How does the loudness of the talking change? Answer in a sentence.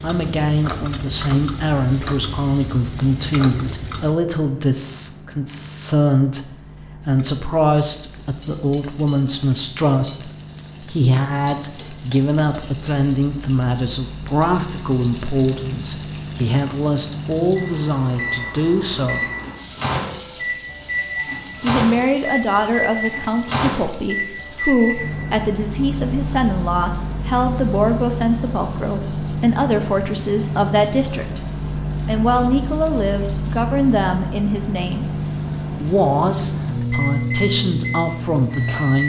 The volume of the talking stays about the same.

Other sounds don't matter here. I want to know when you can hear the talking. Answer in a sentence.
The talking can be heard from 0.0 to 6.5 s, from 7.0 to 19.2 s, from 21.6 to 31.4 s, from 32.0 to 35.1 s and from 35.7 to 39.0 s.